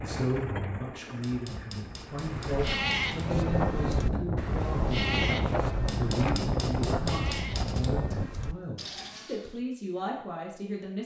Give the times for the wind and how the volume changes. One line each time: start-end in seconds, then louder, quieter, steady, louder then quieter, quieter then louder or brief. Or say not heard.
0.0-8.3 louder.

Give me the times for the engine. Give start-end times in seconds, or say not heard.
0.0-2.8.